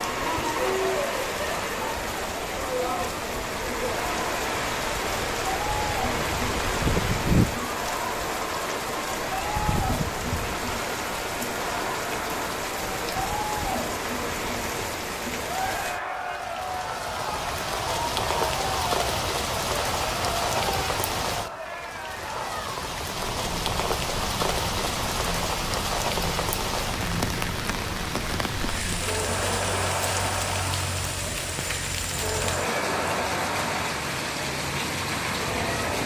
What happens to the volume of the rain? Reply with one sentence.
The loudness of the rain stays about the same.